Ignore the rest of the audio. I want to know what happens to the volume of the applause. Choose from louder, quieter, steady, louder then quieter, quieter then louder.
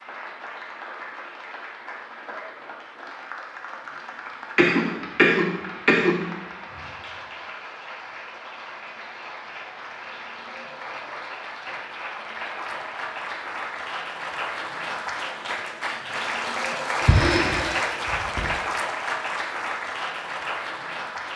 louder.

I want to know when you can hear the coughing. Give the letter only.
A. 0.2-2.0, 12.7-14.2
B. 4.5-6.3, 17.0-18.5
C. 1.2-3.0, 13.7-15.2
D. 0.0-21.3
B.